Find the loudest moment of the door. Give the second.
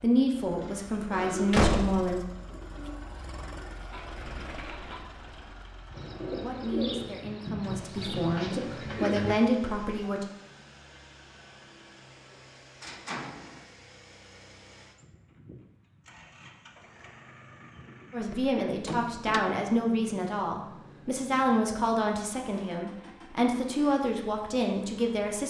2 s.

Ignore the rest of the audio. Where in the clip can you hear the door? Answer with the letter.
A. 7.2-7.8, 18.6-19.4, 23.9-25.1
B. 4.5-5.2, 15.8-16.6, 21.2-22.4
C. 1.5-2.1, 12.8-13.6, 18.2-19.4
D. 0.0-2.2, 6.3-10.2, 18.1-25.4
C.